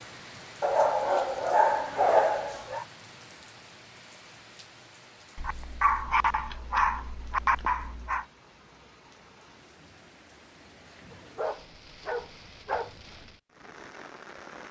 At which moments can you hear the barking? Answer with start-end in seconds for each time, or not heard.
0.6-2.9, 5.3-8.2, 11.1-12.9.